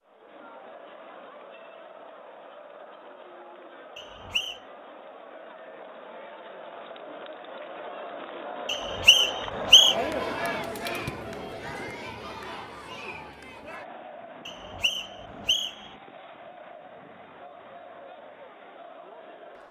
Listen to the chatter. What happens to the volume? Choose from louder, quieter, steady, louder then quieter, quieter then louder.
louder then quieter.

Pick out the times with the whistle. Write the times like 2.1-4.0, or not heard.
4.0-4.6, 8.7-9.9, 14.4-15.9.